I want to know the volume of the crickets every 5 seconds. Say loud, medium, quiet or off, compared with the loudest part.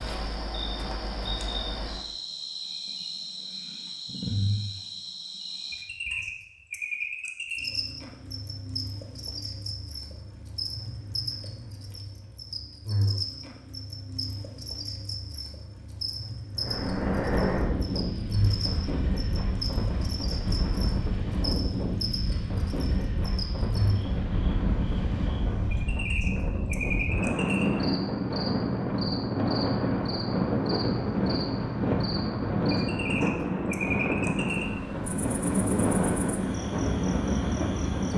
loud, loud, loud, loud, loud, loud, loud, medium.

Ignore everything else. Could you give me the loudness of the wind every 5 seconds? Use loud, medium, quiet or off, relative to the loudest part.
off, off, off, loud, medium, loud, loud, loud.